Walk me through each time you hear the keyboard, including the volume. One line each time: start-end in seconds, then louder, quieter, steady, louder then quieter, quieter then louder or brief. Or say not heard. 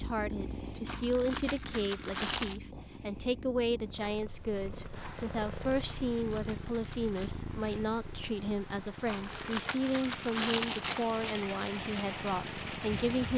not heard.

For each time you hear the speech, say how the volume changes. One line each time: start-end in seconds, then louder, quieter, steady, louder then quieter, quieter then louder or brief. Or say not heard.
0.0-13.3 steady.